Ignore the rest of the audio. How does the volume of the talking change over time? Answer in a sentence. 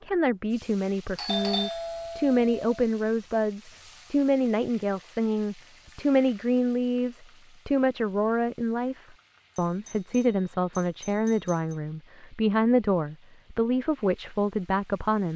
The loudness of the talking stays about the same.